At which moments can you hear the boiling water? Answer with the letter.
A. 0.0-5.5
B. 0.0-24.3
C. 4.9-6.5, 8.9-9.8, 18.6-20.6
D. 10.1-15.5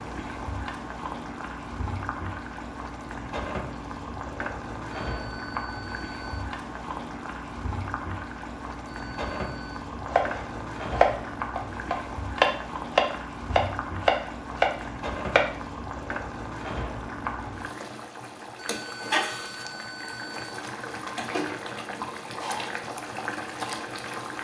B.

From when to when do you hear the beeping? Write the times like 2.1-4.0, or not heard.
4.9-6.5, 8.9-9.8, 18.6-20.6.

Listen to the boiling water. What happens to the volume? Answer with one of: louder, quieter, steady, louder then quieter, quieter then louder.
steady.